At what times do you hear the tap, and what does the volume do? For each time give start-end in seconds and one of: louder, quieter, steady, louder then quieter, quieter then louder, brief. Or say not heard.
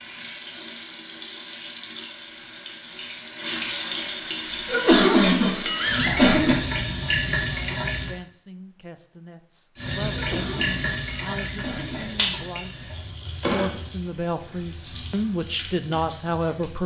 0.0-8.1 louder
9.8-16.8 quieter.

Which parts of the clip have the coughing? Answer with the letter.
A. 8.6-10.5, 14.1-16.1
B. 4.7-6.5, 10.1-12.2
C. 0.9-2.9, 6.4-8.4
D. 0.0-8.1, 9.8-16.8
B.